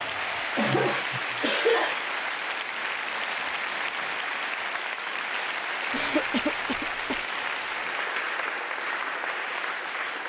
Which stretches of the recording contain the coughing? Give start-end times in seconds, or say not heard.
0.6-2.0, 5.9-7.2.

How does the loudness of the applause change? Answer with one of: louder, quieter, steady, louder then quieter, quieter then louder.
steady.